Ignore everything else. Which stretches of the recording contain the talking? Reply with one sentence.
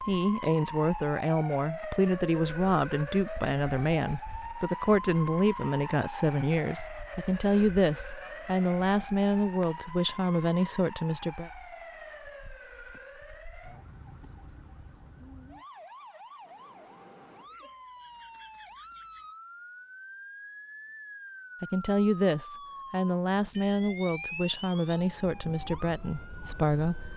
You can hear the talking from 0.1 to 11.5 s and from 21.6 to 27.1 s.